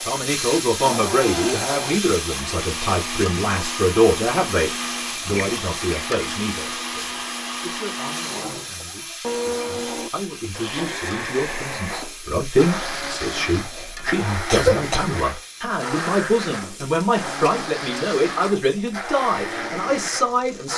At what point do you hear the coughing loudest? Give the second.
15 s.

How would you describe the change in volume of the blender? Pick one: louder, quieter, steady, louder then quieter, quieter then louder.
steady.